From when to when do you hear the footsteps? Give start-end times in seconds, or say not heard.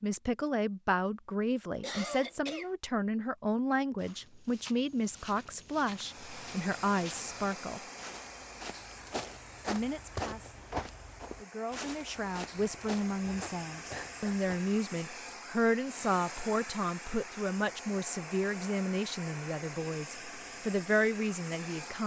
4.0-14.8.